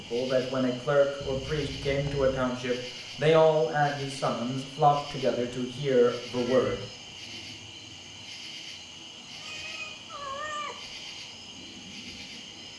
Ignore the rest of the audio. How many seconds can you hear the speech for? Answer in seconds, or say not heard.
7 s.